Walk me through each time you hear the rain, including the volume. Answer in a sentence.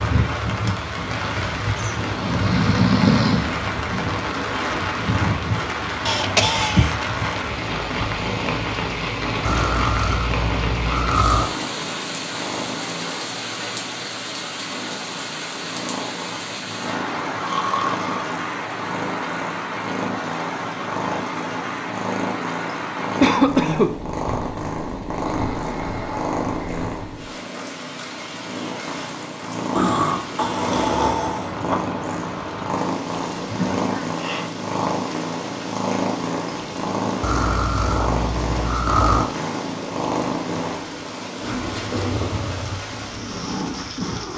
The rain can be heard from 0.0 to 44.3 s, getting quieter.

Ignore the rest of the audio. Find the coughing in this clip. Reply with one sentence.
The coughing can be heard from 6.0 to 7.0 s, from 23.2 to 23.9 s and from 33.5 to 34.5 s.